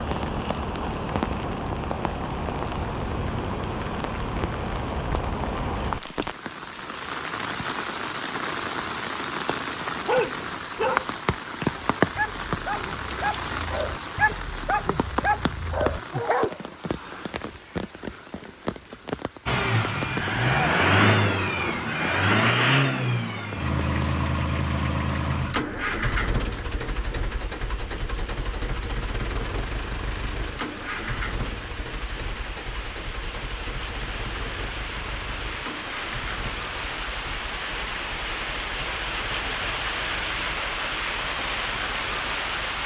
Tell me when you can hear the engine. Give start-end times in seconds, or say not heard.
19.4-42.8.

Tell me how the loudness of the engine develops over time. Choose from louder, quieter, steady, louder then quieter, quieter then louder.
quieter.